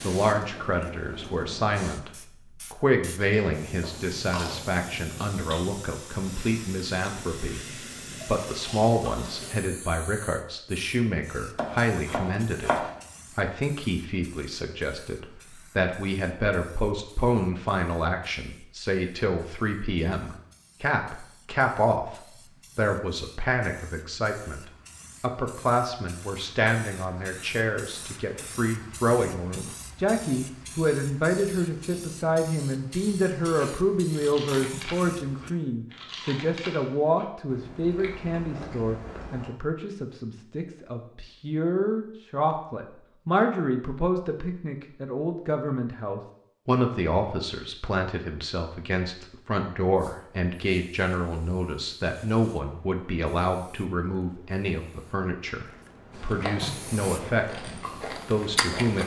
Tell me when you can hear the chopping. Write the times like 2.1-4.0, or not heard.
11.6-12.9.